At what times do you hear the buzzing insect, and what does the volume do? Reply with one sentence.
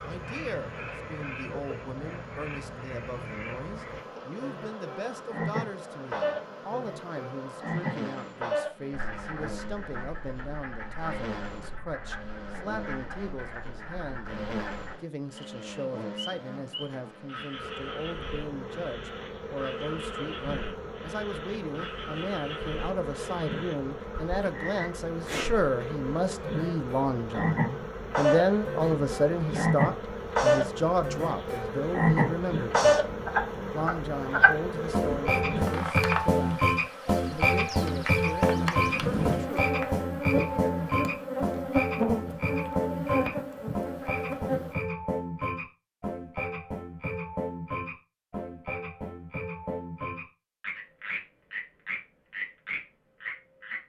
You can hear the buzzing insect from 0.0 to 44.8 s, getting louder.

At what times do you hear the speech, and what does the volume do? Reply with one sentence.
The speech can be heard from 0.0 to 39.6 s, getting louder then quieter.